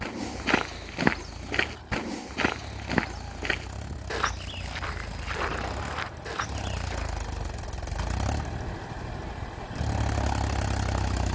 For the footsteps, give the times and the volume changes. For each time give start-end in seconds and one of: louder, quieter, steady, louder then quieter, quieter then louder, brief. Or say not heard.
0.0-7.2 quieter.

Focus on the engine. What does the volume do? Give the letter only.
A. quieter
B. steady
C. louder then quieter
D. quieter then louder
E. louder
E.